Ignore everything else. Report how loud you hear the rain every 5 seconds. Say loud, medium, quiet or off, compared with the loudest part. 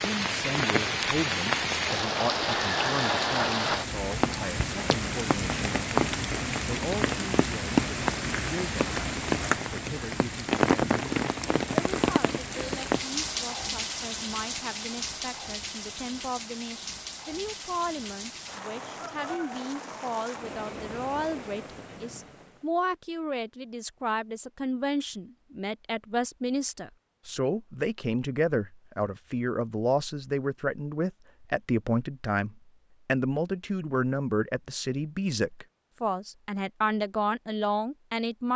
loud, loud, loud, medium, quiet, off, off, off.